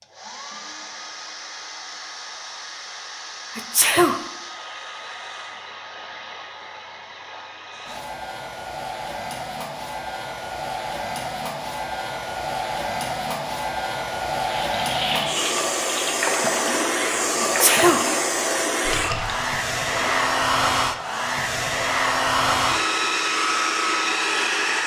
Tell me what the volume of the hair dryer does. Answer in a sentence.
The volume of the hair dryer goes up.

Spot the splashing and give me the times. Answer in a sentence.
You can hear the splashing from 14.6 to 20.2 s.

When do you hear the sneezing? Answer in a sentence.
You can hear the sneezing from 3.5 to 4.2 s and from 17.4 to 18.1 s.